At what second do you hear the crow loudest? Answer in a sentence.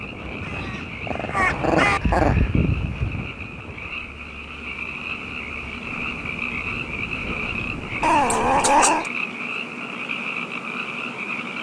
The loudest moment of the crow is at 2 seconds.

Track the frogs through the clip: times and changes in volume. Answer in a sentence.
The frogs can be heard from 0.0 to 11.5 s, getting louder.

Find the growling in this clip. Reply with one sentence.
The growling can be heard from 0.6 to 2.4 s and from 8.0 to 9.1 s.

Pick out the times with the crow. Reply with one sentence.
The crow can be heard from 0.2 to 3.3 s.